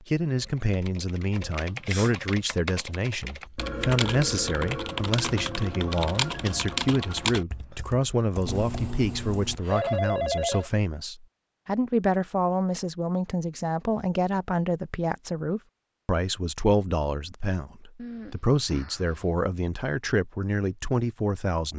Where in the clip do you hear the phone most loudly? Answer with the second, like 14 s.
10 s.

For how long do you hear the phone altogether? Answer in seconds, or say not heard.
5 s.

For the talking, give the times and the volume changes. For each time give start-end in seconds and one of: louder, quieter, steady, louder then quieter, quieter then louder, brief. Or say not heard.
0.1-21.7 steady.